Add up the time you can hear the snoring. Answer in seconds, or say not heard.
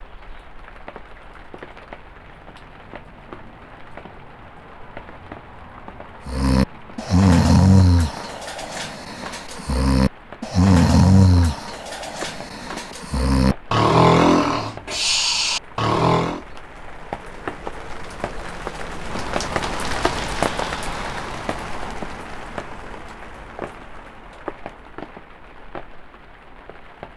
10 s.